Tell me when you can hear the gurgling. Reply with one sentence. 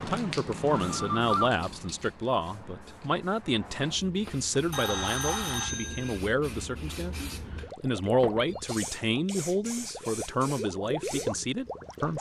The gurgling can be heard from 7.6 to 12.1 s.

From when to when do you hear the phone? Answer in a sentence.
You can hear the phone from 0.8 to 1.5 s, from 4.2 to 6.2 s and from 8.2 to 8.8 s.